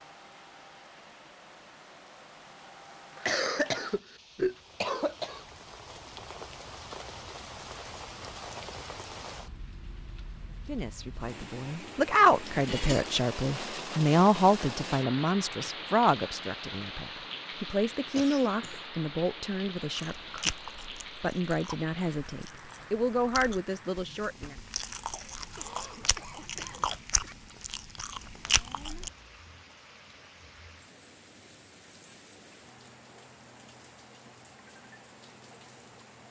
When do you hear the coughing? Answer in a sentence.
The coughing can be heard from 3.2 to 5.5 s, from 18.1 to 18.9 s and from 25.4 to 27.4 s.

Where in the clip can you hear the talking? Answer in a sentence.
You can hear the talking from 10.7 to 24.6 s.